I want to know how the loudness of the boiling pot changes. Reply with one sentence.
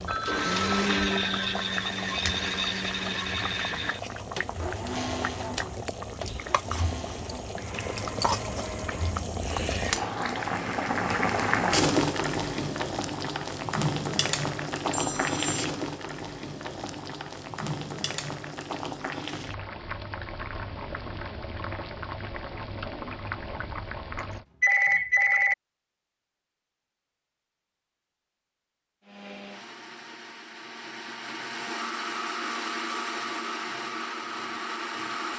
The volume of the boiling pot goes up, then down.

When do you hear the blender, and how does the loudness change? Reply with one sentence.
You can hear the blender from 0.2 to 9.9 s, getting quieter; and from 29.1 to 35.3 s, getting louder.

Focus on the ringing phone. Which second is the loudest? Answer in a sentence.
The volume of the ringing phone peaks at 25 seconds.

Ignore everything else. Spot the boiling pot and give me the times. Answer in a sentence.
You can hear the boiling pot from 0.0 to 24.4 s.